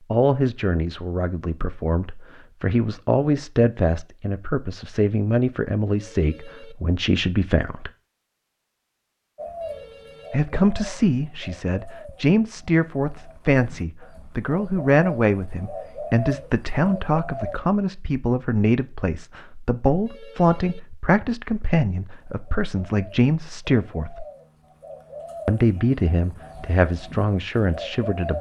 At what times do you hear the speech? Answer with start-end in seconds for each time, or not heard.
0.1-7.9, 10.3-24.2, 25.4-28.3.